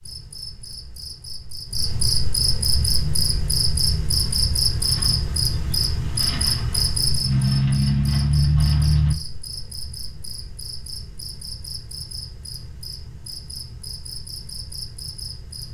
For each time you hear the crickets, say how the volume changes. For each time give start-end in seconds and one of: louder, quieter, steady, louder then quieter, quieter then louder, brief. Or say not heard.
0.0-15.6 quieter.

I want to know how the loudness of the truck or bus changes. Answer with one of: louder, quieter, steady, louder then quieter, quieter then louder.
louder.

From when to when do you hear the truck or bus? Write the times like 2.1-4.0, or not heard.
2.8-9.2.